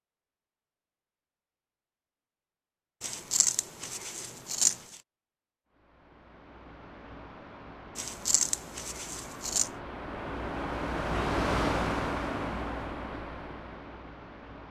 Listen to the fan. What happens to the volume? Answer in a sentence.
The volume of the fan goes up, then down.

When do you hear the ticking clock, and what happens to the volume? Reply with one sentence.
You can't hear the ticking clock here.